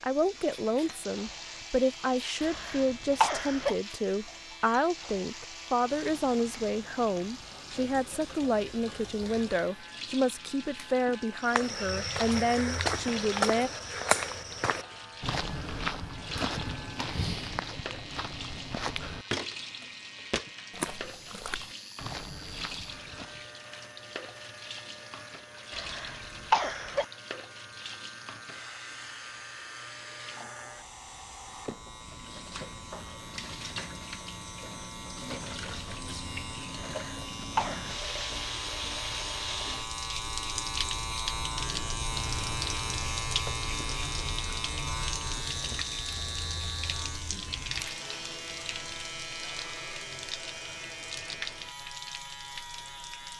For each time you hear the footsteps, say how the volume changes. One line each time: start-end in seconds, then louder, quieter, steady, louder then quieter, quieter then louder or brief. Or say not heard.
11.4-23.4 quieter.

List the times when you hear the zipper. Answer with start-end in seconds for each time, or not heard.
not heard.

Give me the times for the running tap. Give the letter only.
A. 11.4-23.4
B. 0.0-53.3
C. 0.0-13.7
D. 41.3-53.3
B.